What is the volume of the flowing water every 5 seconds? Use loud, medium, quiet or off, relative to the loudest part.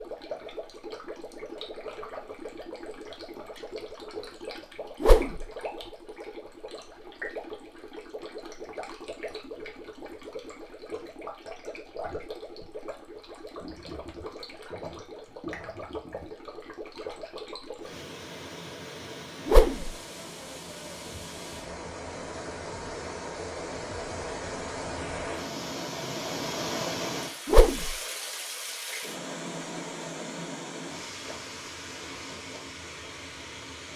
medium, medium, medium, medium, loud, loud, medium.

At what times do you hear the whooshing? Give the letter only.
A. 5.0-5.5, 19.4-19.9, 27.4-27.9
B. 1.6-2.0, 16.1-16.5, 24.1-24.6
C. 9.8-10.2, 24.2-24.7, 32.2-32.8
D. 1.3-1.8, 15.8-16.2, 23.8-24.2
A.